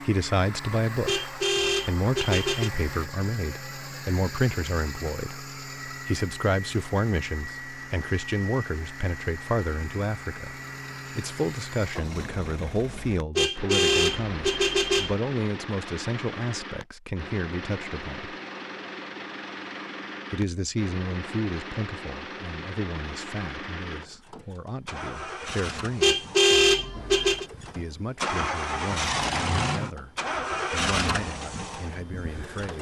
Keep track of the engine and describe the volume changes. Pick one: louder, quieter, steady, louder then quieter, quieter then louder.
louder.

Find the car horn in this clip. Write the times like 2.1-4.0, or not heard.
1.1-2.7, 13.3-15.2, 26.0-27.4.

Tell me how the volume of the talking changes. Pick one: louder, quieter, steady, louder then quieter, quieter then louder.
quieter.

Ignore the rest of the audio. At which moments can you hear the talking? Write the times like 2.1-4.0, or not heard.
0.1-18.4, 20.3-26.2, 27.8-32.7.